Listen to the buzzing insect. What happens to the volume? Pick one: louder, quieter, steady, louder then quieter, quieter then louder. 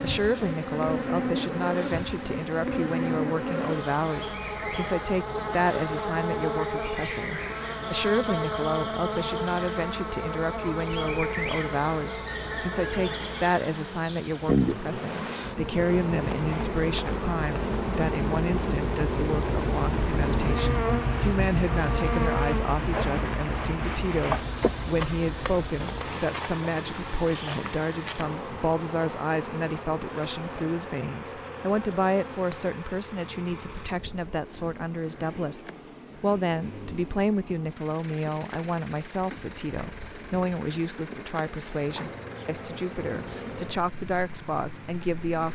quieter.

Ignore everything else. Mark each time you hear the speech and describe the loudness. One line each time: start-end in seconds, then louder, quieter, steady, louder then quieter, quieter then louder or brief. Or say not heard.
0.0-45.4 steady.